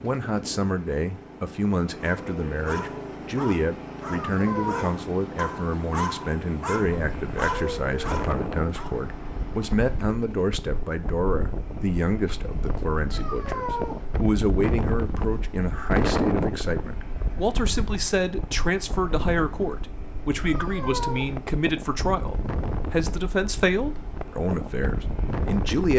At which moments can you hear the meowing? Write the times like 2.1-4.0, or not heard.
4.0-4.9, 13.1-13.9, 20.4-21.2.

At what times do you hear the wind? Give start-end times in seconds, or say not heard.
7.0-25.9.